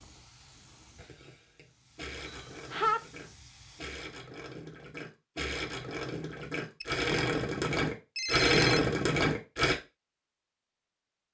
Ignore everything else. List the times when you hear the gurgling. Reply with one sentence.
You can hear the gurgling from 0.9 to 9.8 s.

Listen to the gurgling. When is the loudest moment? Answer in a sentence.
The loudest moment of the gurgling is at 9 seconds.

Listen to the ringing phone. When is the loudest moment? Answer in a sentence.
The loudest moment of the ringing phone is at 3 seconds.